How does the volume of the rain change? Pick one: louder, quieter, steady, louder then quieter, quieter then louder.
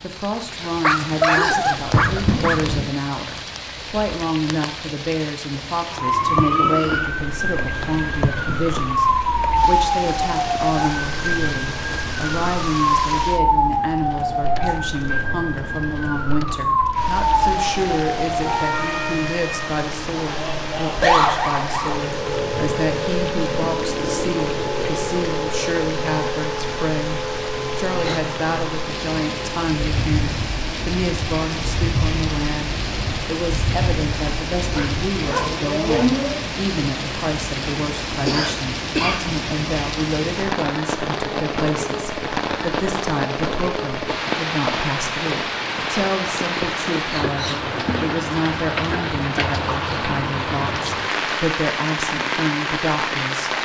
louder.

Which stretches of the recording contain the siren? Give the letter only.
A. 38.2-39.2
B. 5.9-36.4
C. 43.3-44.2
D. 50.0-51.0
B.